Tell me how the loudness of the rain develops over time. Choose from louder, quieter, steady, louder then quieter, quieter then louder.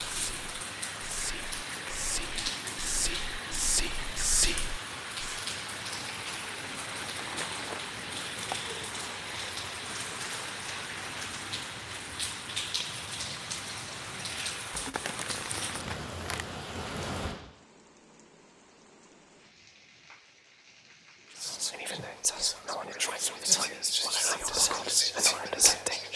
quieter.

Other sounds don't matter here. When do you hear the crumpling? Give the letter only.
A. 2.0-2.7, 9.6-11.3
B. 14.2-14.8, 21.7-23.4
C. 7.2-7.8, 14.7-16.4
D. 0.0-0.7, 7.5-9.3
C.